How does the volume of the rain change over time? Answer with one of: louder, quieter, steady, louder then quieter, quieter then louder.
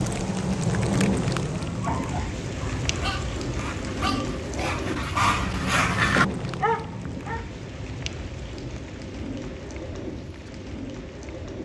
quieter.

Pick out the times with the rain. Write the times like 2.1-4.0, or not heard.
0.0-11.6.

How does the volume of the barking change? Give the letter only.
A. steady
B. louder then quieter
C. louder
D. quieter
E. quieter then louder
C.